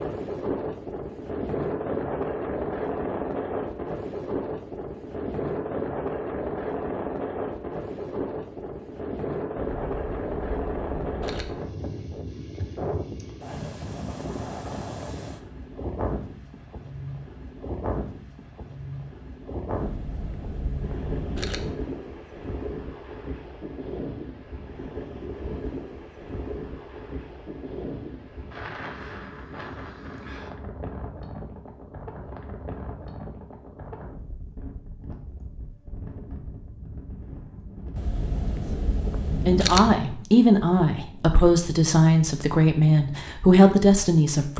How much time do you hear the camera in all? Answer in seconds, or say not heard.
6 s.